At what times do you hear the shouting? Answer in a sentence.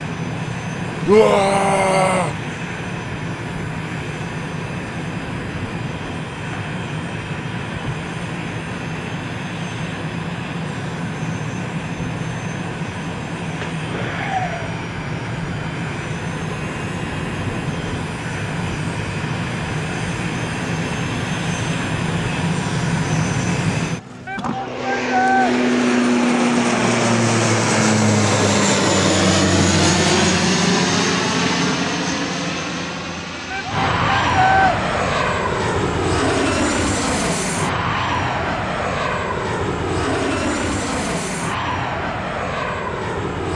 You can hear the shouting from 1.1 to 2.4 s, from 24.2 to 25.6 s and from 33.5 to 34.8 s.